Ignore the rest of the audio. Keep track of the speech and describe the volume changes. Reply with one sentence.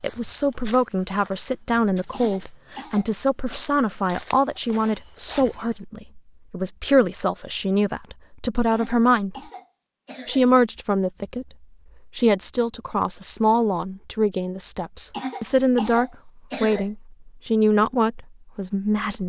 The volume of the speech stays about the same.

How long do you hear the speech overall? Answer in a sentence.
The speech can be heard for 18 seconds in total.